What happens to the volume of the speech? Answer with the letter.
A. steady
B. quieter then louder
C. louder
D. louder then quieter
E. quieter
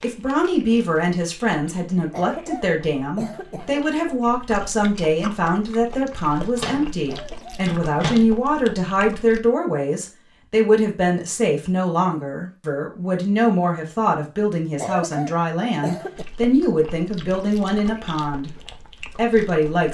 A.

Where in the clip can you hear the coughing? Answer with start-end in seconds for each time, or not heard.
2.1-3.9, 7.0-7.7, 14.8-16.2.